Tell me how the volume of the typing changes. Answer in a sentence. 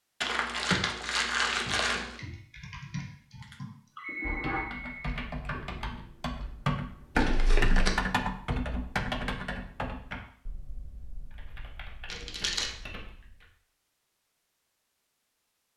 The loudness of the typing goes up, then down.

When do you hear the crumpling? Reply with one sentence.
You can hear the crumpling from 0.2 to 2.1 s, from 7.2 to 8.0 s and from 12.1 to 12.7 s.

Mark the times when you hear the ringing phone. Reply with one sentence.
You can hear the ringing phone from 3.4 to 5.2 s.